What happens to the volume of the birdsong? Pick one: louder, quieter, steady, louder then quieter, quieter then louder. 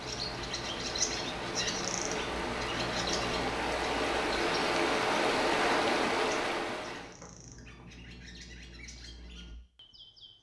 quieter.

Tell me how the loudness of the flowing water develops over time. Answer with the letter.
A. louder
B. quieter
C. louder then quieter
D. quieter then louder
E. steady
A.